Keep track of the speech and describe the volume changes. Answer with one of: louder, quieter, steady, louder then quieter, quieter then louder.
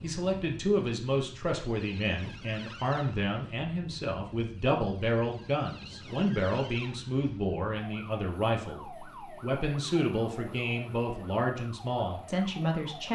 steady.